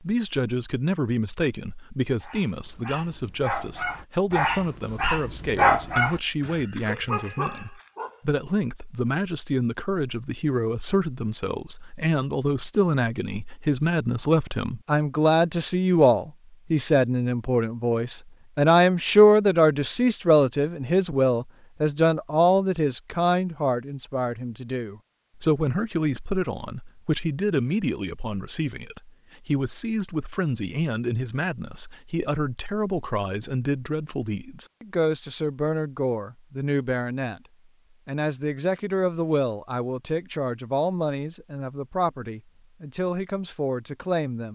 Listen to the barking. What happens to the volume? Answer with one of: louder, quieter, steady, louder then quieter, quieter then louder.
louder then quieter.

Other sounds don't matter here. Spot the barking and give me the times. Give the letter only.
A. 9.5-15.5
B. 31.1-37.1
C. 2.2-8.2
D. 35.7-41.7
C.